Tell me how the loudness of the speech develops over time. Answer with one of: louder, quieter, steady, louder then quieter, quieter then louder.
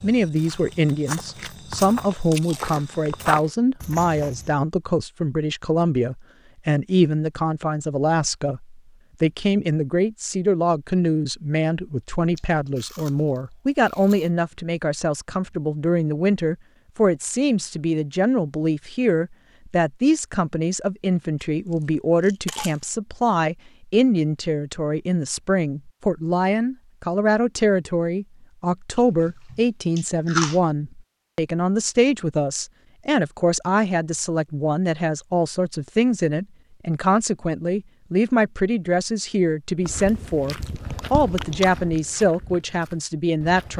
steady.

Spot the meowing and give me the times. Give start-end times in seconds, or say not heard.
not heard.